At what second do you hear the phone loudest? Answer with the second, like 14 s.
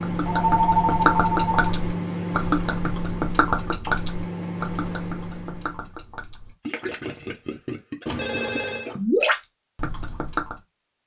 1 s.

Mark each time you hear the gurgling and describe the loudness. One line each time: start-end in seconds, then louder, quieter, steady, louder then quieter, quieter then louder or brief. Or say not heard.
0.0-10.6 quieter then louder.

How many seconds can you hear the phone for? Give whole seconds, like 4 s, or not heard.
2 s.